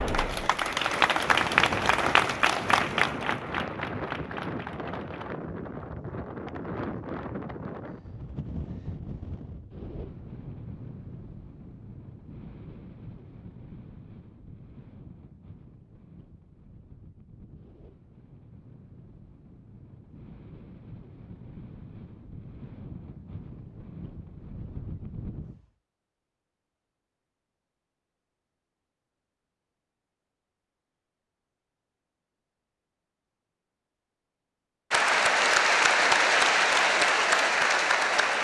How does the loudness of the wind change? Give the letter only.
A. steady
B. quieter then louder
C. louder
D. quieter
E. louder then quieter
B.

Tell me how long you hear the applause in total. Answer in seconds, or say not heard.
9 s.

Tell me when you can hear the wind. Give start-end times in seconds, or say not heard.
0.0-25.6.